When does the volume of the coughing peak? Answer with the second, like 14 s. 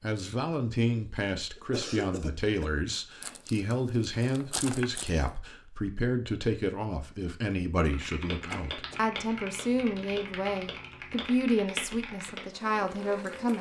2 s.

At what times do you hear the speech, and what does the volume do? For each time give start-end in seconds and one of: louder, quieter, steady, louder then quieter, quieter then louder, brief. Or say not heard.
0.0-13.5 steady.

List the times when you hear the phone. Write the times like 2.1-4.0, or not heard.
not heard.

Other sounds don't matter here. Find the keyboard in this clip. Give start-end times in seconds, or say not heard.
7.9-13.5.